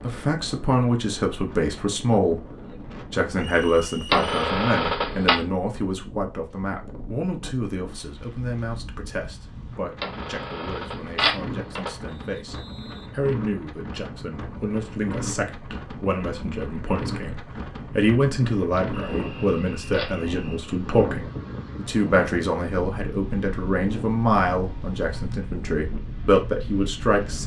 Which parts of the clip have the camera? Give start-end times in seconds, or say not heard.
4.1-5.3, 10.0-11.9, 18.9-20.1.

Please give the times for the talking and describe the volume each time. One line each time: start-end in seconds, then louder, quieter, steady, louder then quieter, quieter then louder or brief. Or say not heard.
0.0-2.5 brief
3.1-27.4 quieter then louder.